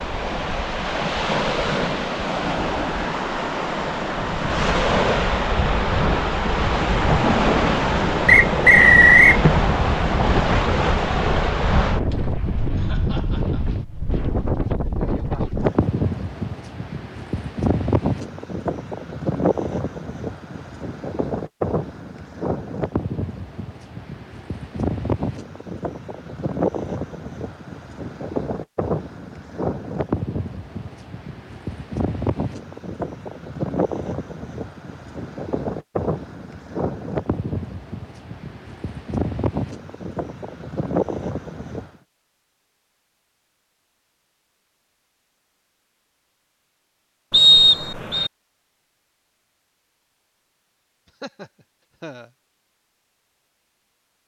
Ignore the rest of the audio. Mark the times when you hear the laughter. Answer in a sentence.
You can hear the laughter from 12.8 to 13.7 s and from 51.2 to 52.3 s.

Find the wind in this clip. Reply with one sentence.
You can hear the wind from 0.0 to 41.9 s.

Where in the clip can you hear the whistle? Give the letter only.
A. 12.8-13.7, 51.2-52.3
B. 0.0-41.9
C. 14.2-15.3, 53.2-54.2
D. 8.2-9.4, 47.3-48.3
D.